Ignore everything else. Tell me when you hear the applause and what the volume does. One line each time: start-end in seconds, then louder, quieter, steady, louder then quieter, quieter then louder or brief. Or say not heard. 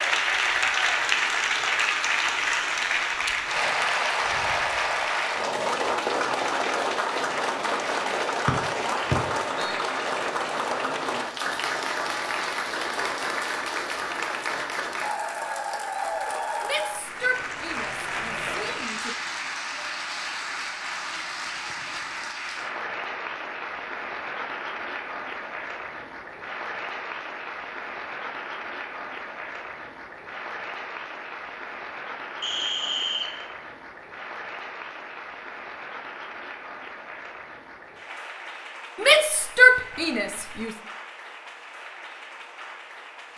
0.0-43.3 quieter.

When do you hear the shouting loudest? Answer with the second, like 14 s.
40 s.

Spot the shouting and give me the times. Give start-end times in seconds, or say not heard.
16.6-19.1, 39.0-40.8.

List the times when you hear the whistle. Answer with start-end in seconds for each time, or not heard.
8.4-9.8, 32.4-33.4.